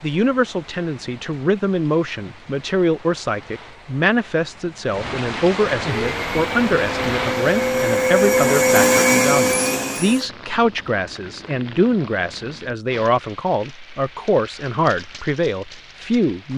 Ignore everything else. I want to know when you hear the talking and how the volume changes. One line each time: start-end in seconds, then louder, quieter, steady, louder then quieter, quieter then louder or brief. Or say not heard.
0.0-16.5 steady.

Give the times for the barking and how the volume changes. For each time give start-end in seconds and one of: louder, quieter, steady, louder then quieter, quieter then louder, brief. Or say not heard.
not heard.